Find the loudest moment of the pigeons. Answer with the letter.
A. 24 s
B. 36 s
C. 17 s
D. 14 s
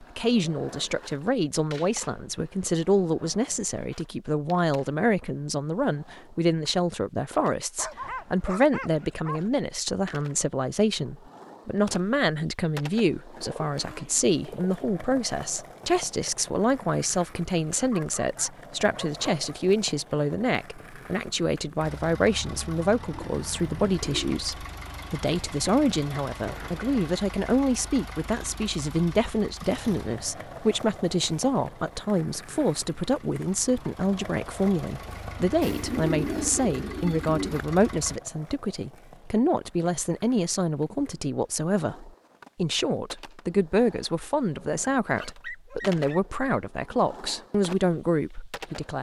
B.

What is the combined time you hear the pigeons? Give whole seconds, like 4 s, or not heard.
5 s.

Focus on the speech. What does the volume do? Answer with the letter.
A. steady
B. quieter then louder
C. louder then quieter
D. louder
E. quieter
A.